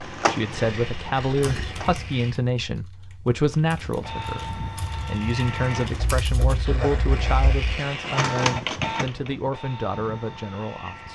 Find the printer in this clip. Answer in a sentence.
The printer can be heard from 0.0 to 2.0 s, from 3.5 to 6.3 s and from 7.8 to 11.1 s.